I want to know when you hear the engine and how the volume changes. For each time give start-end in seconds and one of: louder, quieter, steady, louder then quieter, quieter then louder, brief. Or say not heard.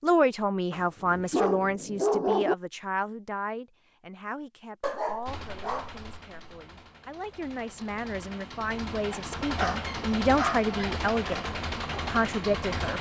5.2-12.9 louder.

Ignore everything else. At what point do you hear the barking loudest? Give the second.
2 s.